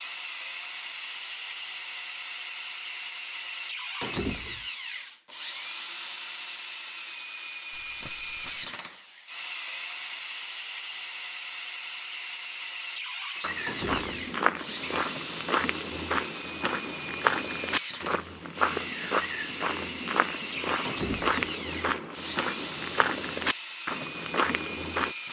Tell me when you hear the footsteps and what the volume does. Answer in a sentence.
The footsteps can be heard from 13.4 to 25.1 s, at a steady volume.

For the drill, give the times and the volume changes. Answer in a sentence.
The drill can be heard from 0.0 to 25.2 s, at a steady volume.